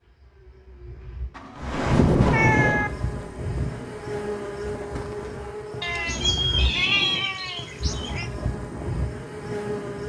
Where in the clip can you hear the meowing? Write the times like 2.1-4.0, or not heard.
1.4-2.9, 5.8-8.3.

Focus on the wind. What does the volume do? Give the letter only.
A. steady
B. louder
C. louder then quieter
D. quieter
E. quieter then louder
D.